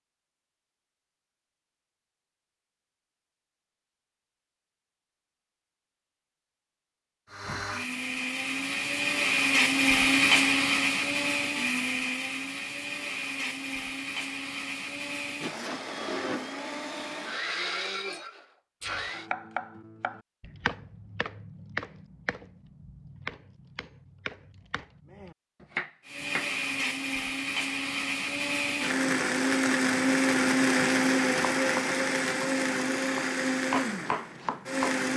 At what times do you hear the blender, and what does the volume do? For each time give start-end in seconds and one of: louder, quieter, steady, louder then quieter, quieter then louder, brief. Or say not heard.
7.2-19.3 quieter
26.1-35.1 louder then quieter.